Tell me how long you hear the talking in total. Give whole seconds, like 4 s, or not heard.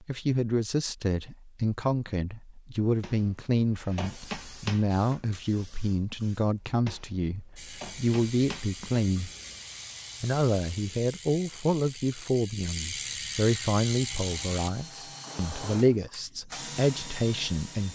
17 s.